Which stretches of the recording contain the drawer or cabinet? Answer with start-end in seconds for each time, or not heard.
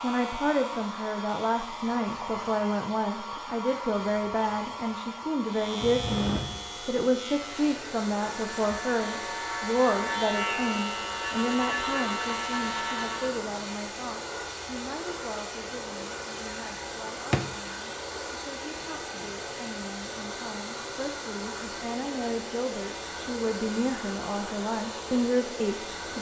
17.0-17.5.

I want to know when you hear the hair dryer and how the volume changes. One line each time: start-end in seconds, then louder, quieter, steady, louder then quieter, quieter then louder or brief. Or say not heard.
0.0-26.1 steady.